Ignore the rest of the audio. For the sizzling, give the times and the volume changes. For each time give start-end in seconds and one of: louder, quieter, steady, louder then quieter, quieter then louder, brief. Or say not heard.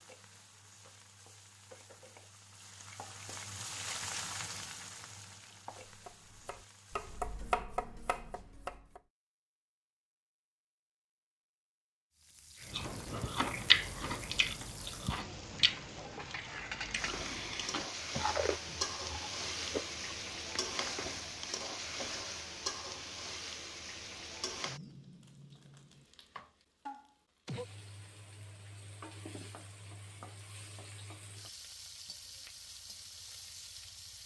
0.0-7.6 louder then quieter
12.2-34.2 louder then quieter.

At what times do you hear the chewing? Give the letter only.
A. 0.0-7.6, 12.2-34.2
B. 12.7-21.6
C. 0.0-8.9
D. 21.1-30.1
B.